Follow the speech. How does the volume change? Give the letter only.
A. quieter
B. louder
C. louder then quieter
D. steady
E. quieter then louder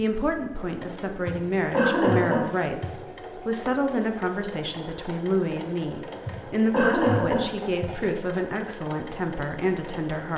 D.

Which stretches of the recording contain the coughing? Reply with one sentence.
The coughing can be heard from 1.2 to 2.9 s and from 6.2 to 7.9 s.